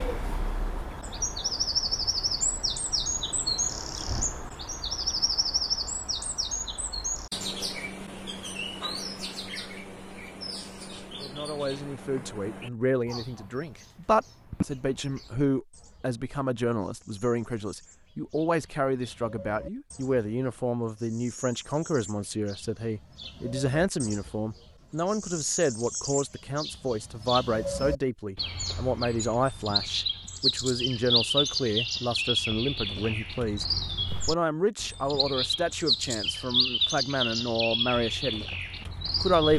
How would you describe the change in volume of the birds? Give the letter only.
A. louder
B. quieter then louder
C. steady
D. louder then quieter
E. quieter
B.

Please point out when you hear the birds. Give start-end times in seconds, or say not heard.
0.0-39.5.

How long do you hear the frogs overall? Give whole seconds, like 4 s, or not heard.
not heard.